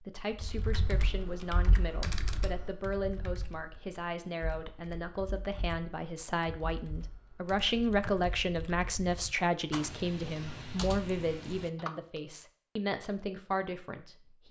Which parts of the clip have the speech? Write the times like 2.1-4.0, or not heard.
0.0-14.4.